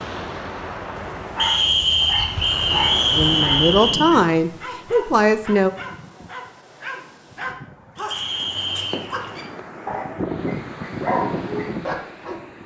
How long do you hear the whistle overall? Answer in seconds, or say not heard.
4 s.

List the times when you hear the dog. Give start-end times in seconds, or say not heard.
0.9-12.4.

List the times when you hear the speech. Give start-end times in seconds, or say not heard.
3.1-5.7.